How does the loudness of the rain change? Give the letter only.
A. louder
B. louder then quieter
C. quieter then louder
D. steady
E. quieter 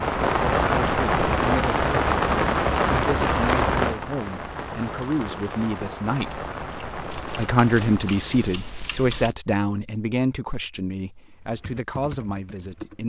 E.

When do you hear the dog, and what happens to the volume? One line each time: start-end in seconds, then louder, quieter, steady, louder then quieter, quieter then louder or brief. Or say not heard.
not heard.